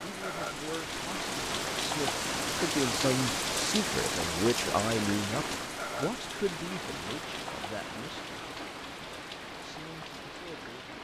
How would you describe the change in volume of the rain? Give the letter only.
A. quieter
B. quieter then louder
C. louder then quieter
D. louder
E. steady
A.